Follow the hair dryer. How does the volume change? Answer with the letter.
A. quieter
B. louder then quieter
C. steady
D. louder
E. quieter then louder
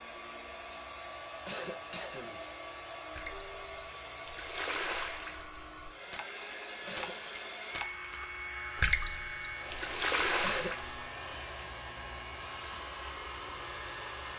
C.